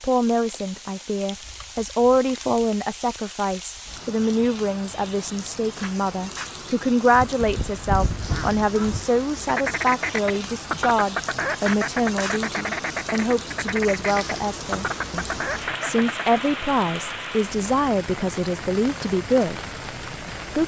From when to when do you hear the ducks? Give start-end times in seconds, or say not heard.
7.0-16.4.